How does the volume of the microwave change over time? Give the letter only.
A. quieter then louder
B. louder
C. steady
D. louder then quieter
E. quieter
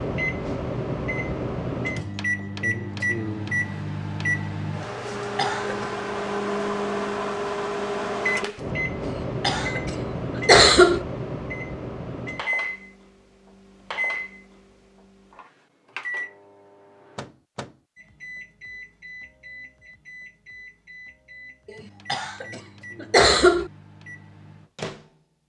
E.